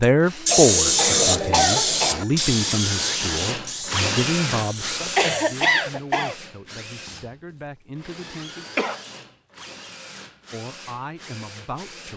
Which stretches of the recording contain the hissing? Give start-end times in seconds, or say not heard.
0.0-5.7.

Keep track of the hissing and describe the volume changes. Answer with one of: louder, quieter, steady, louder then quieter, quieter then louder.
quieter.